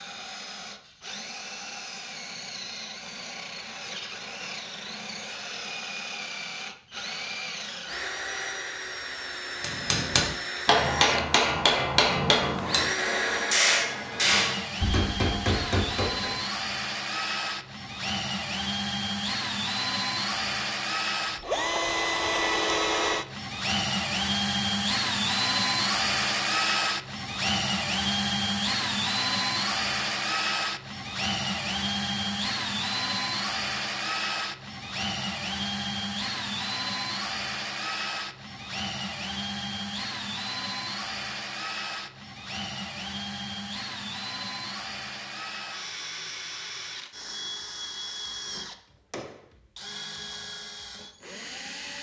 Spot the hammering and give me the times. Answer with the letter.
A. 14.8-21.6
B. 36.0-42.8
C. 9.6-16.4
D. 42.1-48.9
C.